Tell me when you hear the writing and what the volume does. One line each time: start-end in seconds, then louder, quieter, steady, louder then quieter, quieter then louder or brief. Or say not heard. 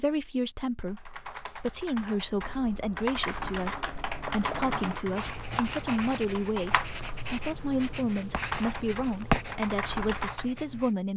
3.4-10.9 louder.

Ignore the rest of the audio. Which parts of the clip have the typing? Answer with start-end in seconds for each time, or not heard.
0.8-10.4.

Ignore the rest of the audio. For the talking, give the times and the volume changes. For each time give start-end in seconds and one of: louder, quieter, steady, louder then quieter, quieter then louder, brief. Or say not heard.
0.0-11.1 steady.